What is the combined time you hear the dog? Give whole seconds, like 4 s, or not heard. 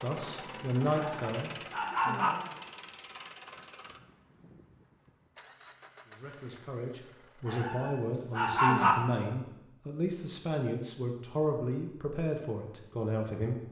3 s.